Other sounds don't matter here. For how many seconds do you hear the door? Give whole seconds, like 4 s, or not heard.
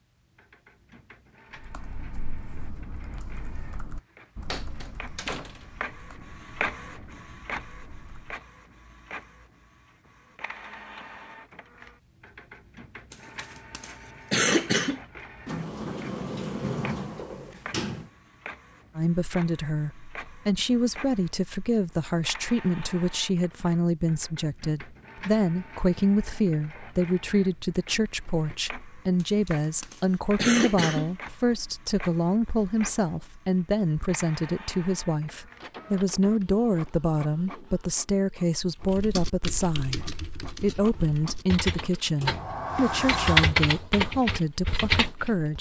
5 s.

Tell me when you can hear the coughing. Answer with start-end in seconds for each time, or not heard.
13.1-15.0, 29.2-31.1.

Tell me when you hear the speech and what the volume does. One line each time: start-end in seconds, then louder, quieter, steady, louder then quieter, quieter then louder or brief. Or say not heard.
18.9-45.5 steady.